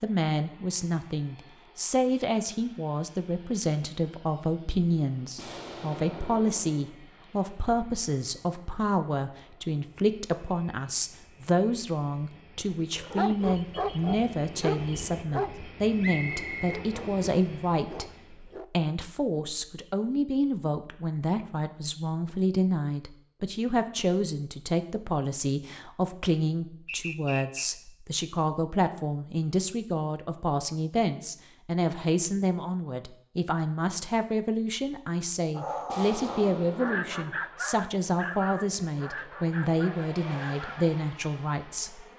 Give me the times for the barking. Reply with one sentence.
You can hear the barking from 12.9 to 18.6 s and from 35.5 to 40.9 s.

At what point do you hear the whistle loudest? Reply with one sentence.
The loudest moment of the whistle is at 16 seconds.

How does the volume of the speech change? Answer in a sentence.
The loudness of the speech stays about the same.